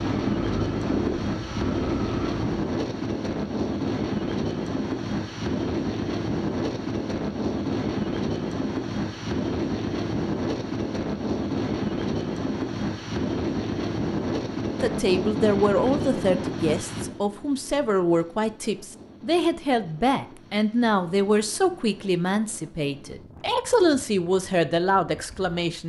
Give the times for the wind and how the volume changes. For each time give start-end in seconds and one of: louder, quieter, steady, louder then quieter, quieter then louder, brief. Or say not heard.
0.0-25.8 quieter.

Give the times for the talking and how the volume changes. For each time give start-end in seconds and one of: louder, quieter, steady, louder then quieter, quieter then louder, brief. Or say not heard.
14.8-25.8 steady.